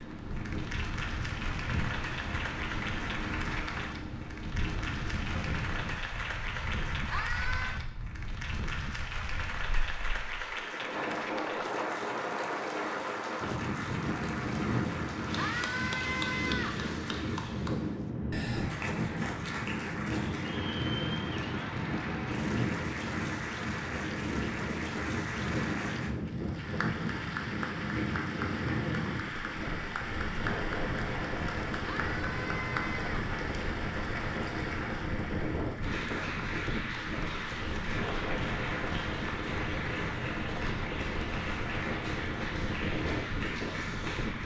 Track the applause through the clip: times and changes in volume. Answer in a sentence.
You can hear the applause from 0.0 to 44.4 s, at a steady volume.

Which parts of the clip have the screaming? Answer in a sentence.
You can hear the screaming from 7.1 to 7.8 s, from 15.3 to 16.9 s and from 31.9 to 33.1 s.